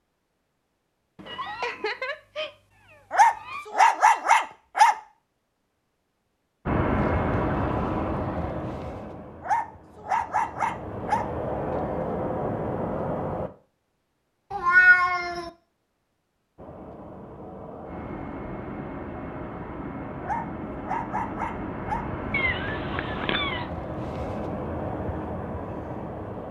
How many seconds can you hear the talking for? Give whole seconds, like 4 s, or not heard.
not heard.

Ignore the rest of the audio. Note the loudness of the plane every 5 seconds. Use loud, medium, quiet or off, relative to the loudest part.
off, loud, loud, medium, medium, medium.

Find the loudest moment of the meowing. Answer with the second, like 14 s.
15 s.